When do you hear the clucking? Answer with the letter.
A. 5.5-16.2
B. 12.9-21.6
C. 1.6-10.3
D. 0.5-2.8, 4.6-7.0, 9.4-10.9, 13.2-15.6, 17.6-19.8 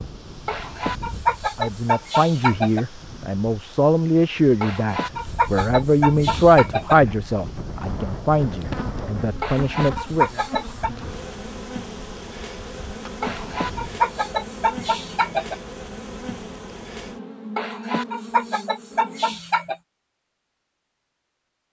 D.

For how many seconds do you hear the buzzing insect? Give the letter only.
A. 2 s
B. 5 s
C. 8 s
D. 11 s
D.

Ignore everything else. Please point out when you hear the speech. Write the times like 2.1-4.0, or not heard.
1.6-10.3.